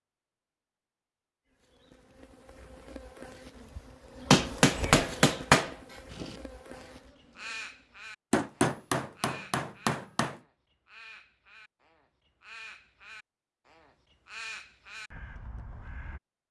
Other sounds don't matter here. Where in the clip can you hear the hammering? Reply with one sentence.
The hammering can be heard from 4.3 to 5.7 s and from 8.3 to 10.4 s.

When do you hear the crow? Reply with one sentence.
You can hear the crow from 6.1 to 16.2 s.